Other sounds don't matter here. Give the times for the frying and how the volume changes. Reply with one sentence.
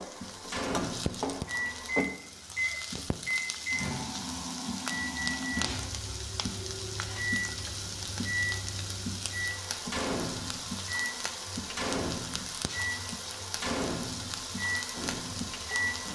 You can hear the frying from 0.0 to 16.1 s, at a steady volume.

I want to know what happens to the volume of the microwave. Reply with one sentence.
The loudness of the microwave stays about the same.